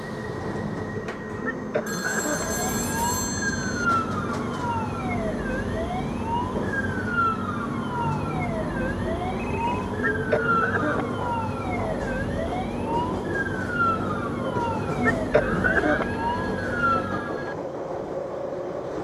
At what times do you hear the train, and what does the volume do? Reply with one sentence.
You can hear the train from 0.0 to 18.9 s, at a steady volume.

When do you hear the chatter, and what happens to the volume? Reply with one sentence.
You can't hear the chatter here.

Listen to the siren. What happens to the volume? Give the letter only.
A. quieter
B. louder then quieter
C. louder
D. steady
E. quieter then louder
D.